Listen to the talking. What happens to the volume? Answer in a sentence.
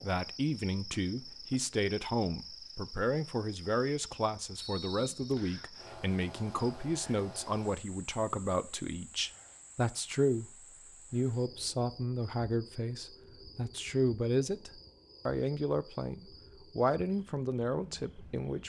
The volume of the talking stays about the same.